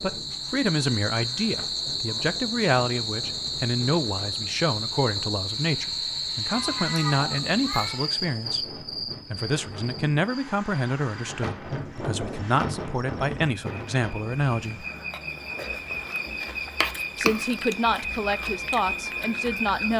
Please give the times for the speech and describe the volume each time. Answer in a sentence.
The speech can be heard from 0.0 to 14.8 s, at a steady volume; and briefly from 17.1 to 19.9 s.